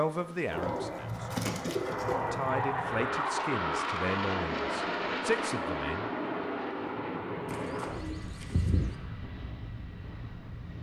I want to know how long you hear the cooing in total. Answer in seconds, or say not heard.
4 s.